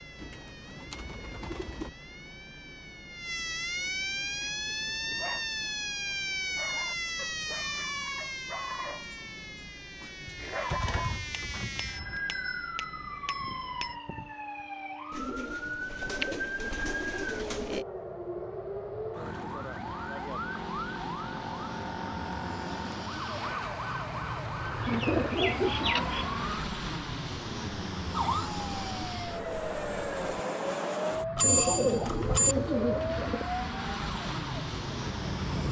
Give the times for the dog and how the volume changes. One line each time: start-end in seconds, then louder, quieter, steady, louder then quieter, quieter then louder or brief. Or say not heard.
4.2-11.3 louder.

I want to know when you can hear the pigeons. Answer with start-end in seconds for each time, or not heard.
0.1-1.9, 10.5-12.2, 15.1-17.9, 24.8-26.3, 31.4-33.5.